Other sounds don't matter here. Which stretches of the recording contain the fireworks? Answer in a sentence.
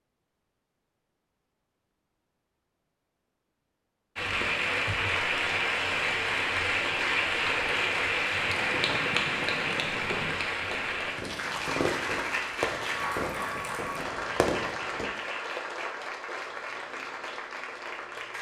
The fireworks can be heard from 7.5 to 15.1 s.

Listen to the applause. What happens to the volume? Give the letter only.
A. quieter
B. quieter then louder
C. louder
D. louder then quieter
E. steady
A.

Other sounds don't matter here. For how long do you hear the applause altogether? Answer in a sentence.
The applause can be heard for 14 seconds in total.